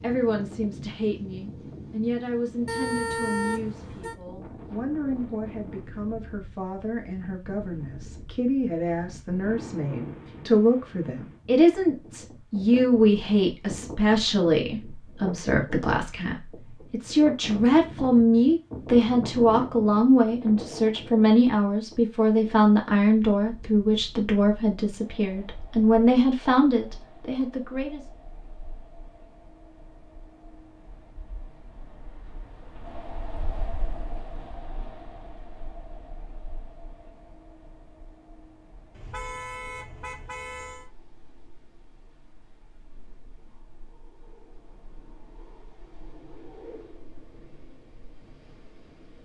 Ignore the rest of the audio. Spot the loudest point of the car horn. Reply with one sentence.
The loudest moment of the car horn is at 3 seconds.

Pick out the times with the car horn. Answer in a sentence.
You can hear the car horn from 2.6 to 4.2 s and from 39.0 to 40.9 s.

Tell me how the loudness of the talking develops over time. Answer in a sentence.
The loudness of the talking goes up.